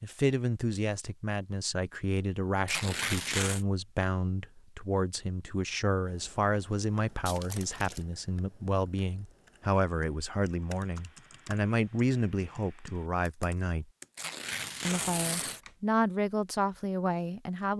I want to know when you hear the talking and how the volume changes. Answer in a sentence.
You can hear the talking from 0.0 to 13.8 s, at a steady volume; and briefly from 14.8 to 17.7 s.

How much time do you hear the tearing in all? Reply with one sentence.
You can hear the tearing for 3 seconds altogether.